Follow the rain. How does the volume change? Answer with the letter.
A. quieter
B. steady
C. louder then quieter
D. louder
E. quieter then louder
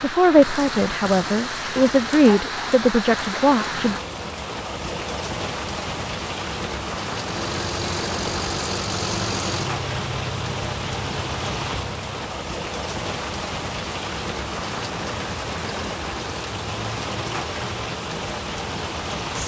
B.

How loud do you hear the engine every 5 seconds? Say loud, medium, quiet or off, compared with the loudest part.
off, loud, medium, off.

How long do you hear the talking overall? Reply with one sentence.
You can hear the talking for 4 seconds altogether.